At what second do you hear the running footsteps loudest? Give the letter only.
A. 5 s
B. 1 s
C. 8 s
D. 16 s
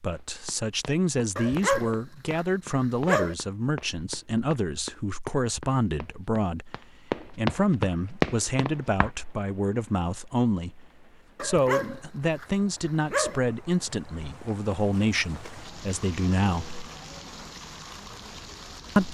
C.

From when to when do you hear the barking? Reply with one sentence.
The barking can be heard from 1.4 to 3.4 s and from 11.3 to 13.4 s.